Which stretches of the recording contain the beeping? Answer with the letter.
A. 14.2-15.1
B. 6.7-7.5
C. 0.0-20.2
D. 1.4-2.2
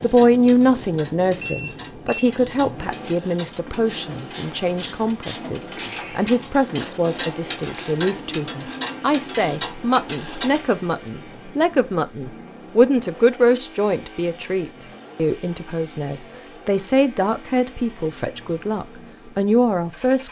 D.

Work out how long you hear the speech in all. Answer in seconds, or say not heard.
20 s.